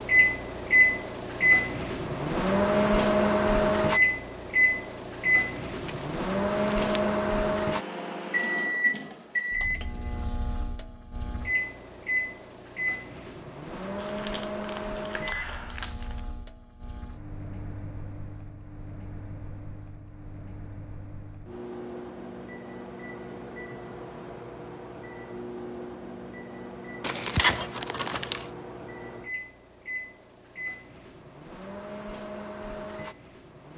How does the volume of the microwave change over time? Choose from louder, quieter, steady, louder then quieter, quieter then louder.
quieter.